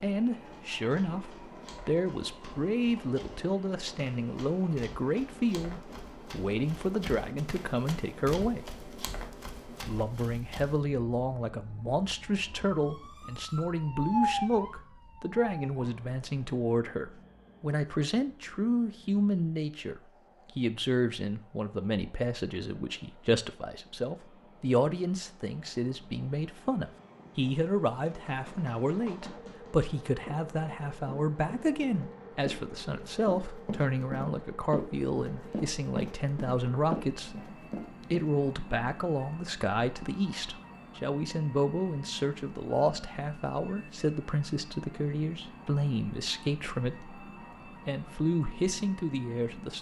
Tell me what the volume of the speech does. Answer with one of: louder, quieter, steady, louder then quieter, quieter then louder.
steady.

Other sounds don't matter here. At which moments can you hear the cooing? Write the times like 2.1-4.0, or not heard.
not heard.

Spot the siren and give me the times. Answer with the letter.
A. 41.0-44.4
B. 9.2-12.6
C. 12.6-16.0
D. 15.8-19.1
C.